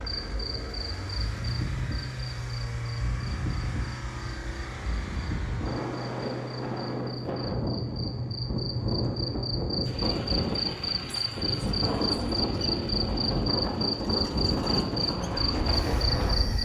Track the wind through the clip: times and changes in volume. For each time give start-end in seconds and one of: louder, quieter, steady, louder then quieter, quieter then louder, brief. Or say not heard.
0.0-16.6 louder.